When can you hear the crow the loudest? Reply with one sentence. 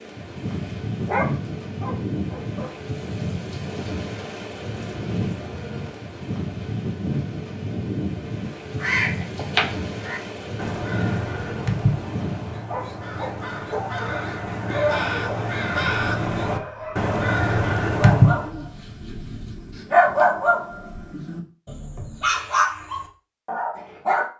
The loudest moment of the crow is at 18 seconds.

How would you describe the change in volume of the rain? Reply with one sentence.
The loudness of the rain stays about the same.